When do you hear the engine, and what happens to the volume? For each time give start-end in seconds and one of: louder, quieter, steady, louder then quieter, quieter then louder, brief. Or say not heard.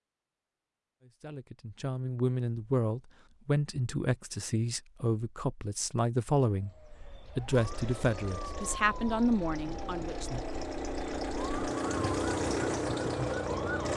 7.5-13.9 louder.